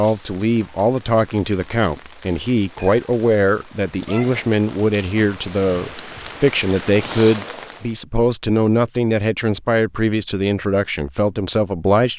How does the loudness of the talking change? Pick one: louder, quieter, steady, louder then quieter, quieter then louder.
steady.